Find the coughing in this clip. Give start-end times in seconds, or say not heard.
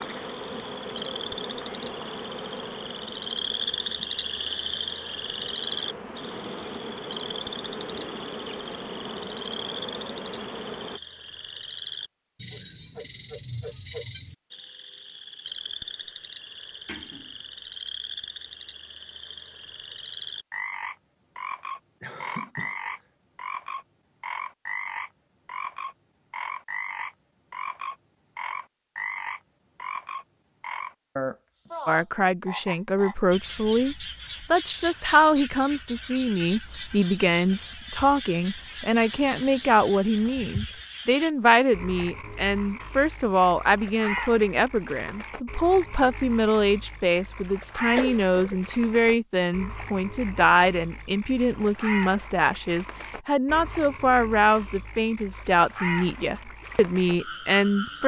16.9-17.4, 22.0-22.9, 48.0-48.6.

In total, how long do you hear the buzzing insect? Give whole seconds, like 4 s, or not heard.
11 s.